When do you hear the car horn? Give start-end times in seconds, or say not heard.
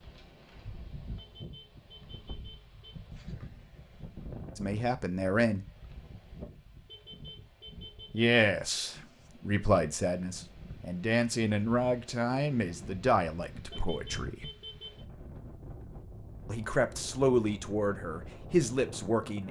1.1-3.0, 6.8-8.2, 13.7-15.1.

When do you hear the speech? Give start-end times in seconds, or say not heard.
4.5-5.7, 8.1-14.4, 16.4-19.4.